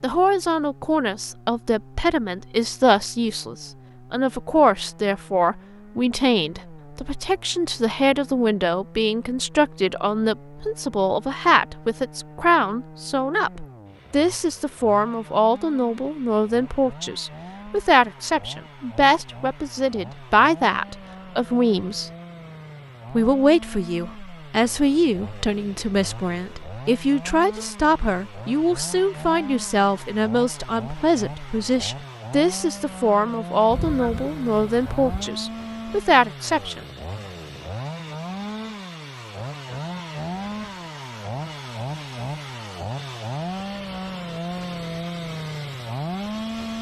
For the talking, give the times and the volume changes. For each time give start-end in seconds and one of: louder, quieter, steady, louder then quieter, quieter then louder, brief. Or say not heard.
0.0-22.1 steady
23.1-36.8 steady.